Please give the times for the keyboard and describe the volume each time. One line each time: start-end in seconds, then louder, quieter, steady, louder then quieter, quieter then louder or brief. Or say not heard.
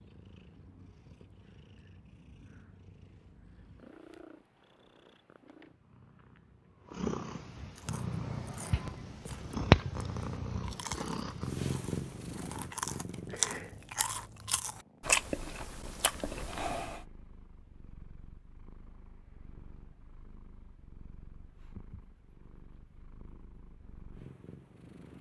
not heard.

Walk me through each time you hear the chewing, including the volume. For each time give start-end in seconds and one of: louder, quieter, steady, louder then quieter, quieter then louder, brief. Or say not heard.
7.8-17.0 louder.